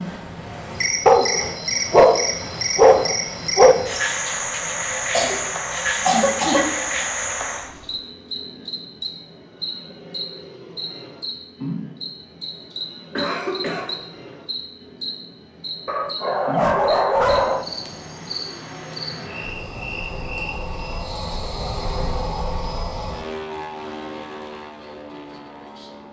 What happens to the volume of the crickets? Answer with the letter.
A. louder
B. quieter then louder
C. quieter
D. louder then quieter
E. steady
C.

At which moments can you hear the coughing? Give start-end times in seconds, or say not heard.
5.1-7.0, 13.2-13.9.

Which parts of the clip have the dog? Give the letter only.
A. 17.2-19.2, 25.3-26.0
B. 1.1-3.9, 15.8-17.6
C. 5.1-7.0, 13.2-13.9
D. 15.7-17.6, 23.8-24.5
B.